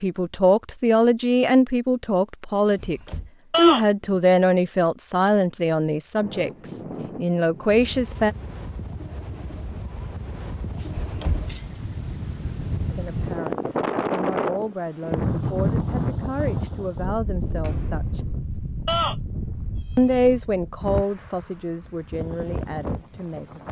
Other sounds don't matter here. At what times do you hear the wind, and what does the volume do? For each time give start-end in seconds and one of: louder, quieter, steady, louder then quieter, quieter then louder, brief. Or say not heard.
6.2-23.6 louder then quieter.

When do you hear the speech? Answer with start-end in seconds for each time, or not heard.
0.0-8.3, 12.8-18.2, 19.9-23.6.